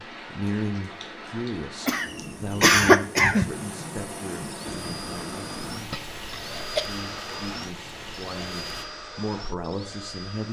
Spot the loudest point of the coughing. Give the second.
3 s.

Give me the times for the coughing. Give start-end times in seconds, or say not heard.
1.9-3.5, 5.7-6.8.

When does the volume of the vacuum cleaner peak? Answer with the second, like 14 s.
7 s.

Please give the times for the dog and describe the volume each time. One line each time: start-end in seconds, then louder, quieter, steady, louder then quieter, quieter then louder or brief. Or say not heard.
not heard.